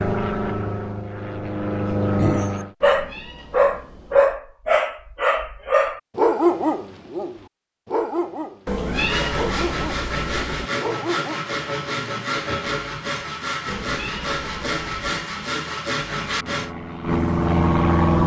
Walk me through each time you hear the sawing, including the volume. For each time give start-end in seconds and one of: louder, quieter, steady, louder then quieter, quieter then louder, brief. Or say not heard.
8.9-16.8 steady.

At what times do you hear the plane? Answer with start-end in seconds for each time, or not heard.
0.0-2.7, 16.2-18.2.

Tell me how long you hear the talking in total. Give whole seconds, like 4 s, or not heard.
not heard.